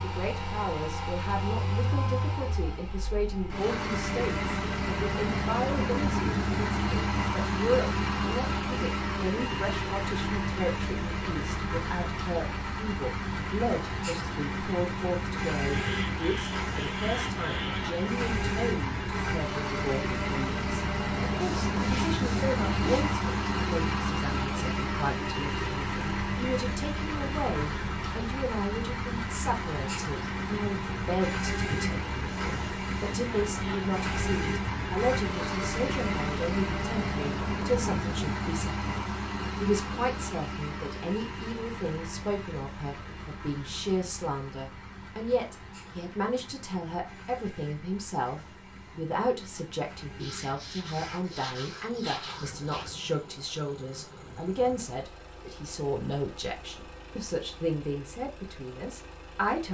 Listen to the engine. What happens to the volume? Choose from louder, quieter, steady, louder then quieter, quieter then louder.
quieter.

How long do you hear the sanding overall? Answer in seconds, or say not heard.
7 s.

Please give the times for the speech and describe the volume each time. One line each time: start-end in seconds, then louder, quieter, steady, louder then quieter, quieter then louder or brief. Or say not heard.
0.0-59.7 steady.